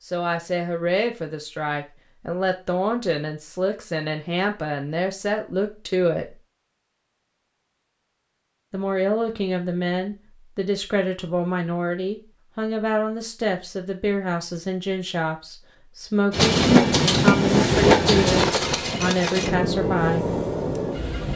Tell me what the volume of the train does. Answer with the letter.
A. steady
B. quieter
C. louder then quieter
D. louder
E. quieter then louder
B.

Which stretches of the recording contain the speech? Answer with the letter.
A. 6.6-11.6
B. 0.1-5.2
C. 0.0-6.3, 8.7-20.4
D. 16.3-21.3
C.